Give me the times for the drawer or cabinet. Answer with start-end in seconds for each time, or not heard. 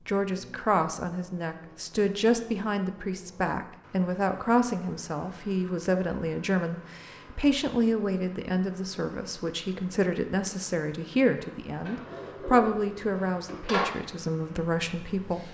11.8-13.9.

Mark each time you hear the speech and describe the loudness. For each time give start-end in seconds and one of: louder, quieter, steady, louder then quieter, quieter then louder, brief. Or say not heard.
0.1-15.5 steady.